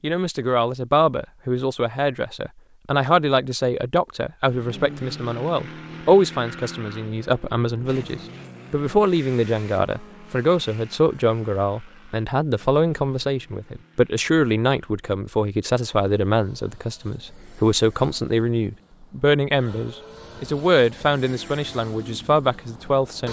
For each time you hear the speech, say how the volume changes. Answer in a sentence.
You can hear the speech from 0.0 to 23.2 s, at a steady volume.